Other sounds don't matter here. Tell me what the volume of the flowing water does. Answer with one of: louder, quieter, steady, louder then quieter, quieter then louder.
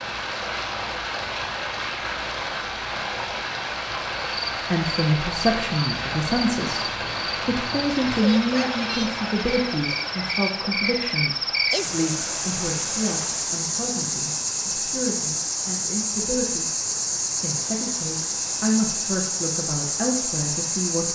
quieter.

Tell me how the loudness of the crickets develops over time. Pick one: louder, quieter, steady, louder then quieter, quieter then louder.
louder.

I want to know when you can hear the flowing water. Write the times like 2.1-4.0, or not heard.
0.0-13.4.